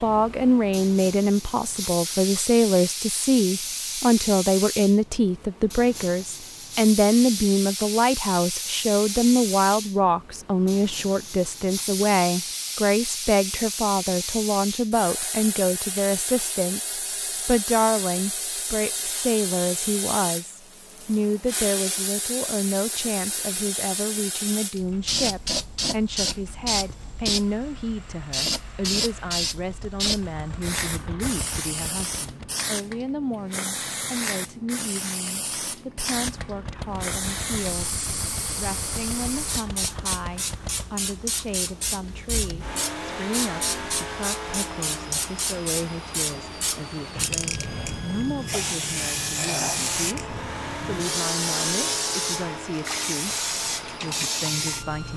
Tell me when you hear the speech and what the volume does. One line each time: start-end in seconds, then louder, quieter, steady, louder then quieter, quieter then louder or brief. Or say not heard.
0.0-55.1 quieter.